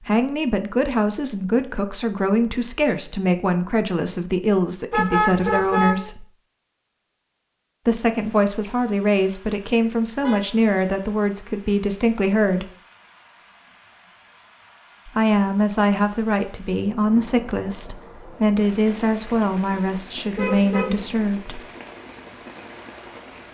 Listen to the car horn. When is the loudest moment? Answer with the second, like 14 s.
5 s.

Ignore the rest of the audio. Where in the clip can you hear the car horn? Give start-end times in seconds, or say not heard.
4.9-6.0, 9.8-10.4, 20.4-21.0.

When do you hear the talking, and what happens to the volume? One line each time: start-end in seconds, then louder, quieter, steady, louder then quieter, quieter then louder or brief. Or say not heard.
0.1-6.2 steady
7.8-12.7 steady
15.1-21.6 steady.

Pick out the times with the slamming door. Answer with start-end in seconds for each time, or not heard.
not heard.